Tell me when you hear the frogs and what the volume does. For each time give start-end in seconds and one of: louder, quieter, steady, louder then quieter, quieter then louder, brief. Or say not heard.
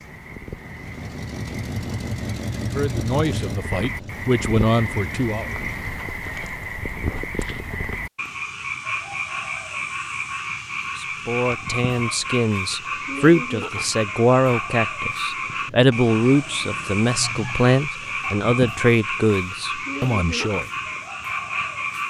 0.0-22.0 louder.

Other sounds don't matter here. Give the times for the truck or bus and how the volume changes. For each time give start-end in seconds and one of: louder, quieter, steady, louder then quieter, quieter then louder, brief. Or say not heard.
0.0-5.9 louder then quieter.